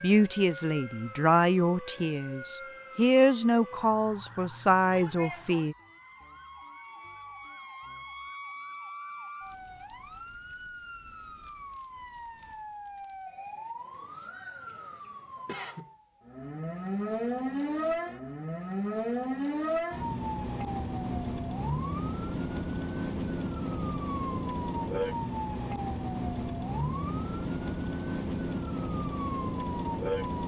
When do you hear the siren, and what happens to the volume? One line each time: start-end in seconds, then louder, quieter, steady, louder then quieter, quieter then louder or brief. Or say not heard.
0.0-30.4 louder.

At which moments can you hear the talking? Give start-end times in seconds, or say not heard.
0.0-5.8.